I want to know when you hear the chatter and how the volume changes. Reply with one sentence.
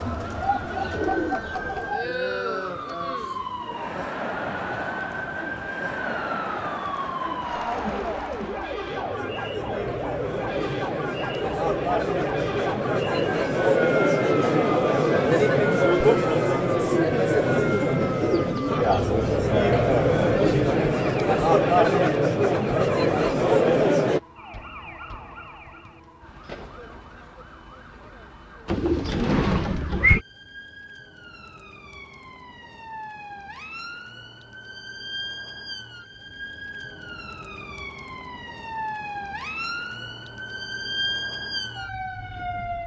You can hear the chatter from 0.0 to 24.2 s, getting louder.